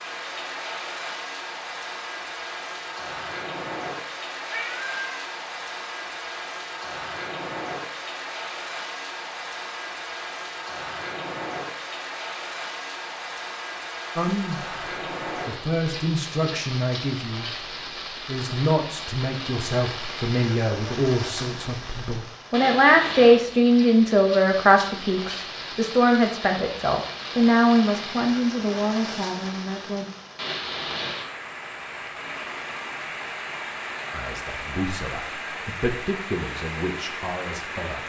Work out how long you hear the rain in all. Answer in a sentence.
The rain can be heard for 38 seconds in total.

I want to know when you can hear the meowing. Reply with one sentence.
You can hear the meowing from 4.5 to 5.2 s.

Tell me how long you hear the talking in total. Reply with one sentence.
The talking can be heard for 20 seconds in total.